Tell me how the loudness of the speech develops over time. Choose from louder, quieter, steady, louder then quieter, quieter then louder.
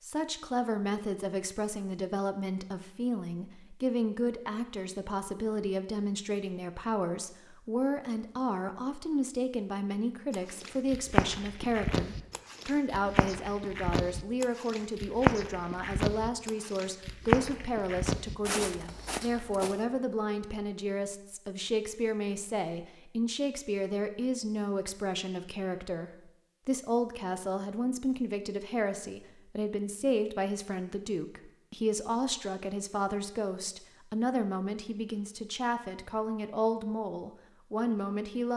steady.